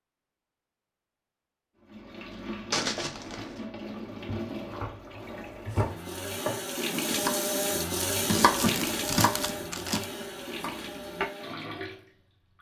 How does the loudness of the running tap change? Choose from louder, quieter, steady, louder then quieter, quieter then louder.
louder then quieter.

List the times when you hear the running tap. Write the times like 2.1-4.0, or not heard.
1.8-12.5.